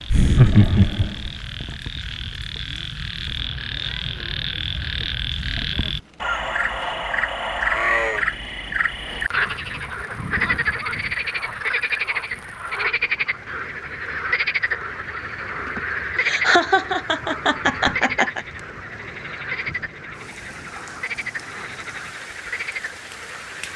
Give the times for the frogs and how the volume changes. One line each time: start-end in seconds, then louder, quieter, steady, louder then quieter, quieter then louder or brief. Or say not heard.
0.0-23.7 louder then quieter.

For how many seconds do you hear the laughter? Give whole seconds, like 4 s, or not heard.
4 s.